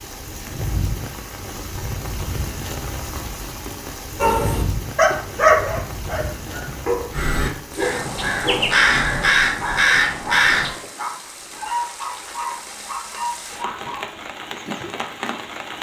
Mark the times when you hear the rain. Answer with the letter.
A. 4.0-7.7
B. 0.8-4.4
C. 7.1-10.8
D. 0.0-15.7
D.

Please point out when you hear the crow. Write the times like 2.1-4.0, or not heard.
7.1-10.8.